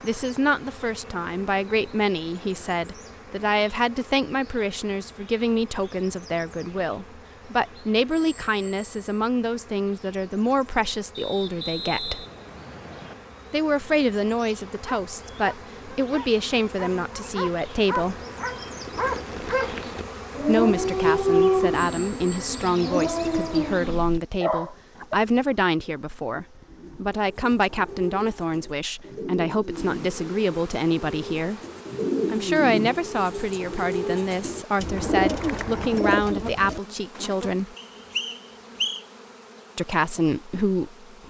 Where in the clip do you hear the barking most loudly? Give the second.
21 s.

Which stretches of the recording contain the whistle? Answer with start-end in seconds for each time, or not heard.
11.2-13.2, 37.8-39.0.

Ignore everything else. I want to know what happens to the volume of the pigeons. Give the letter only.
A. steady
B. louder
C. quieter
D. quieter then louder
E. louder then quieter
B.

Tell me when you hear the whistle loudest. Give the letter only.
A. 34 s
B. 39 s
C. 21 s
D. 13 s
B.